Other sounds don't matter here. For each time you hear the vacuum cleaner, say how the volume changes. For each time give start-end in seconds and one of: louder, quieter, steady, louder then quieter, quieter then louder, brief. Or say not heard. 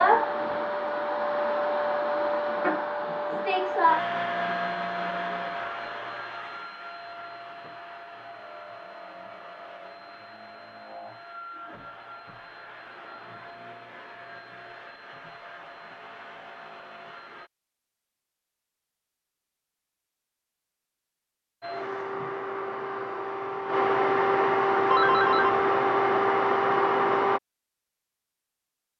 0.0-17.5 quieter
21.6-27.4 louder.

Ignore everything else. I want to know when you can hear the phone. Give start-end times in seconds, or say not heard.
24.9-25.6.